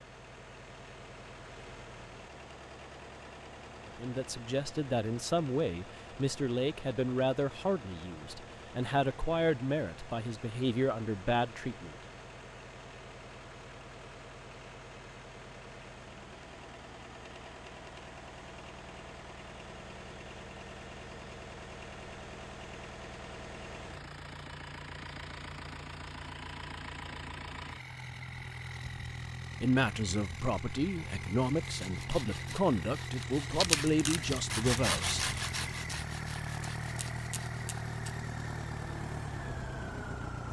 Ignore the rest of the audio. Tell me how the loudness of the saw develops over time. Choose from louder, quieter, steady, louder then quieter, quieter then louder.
louder then quieter.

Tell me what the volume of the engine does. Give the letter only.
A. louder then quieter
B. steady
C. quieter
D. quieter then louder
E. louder
E.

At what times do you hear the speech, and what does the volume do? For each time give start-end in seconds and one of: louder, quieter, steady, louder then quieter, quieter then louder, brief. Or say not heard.
3.9-11.9 steady
29.6-35.3 steady.